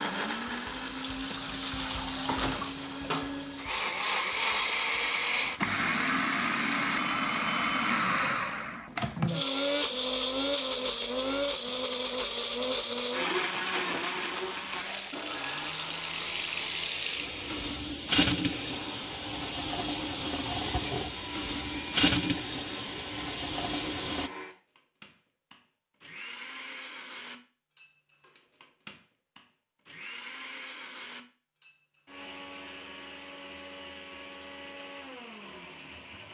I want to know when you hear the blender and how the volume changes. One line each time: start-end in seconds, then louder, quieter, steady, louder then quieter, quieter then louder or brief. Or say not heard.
0.0-36.2 quieter.